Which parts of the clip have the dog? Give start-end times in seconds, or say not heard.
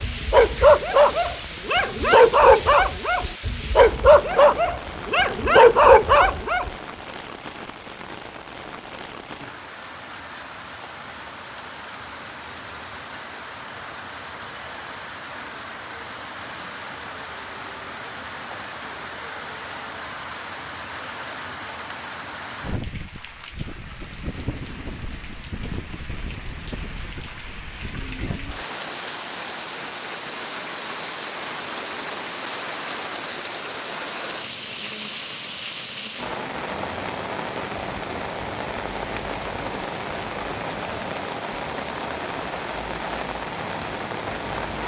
0.0-6.7.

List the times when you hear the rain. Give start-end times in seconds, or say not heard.
0.0-44.8.